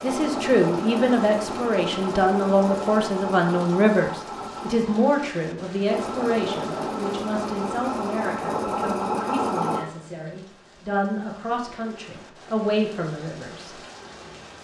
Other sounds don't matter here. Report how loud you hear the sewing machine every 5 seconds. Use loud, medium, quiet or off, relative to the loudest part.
loud, loud, off.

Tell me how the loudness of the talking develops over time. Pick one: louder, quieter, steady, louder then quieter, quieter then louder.
quieter then louder.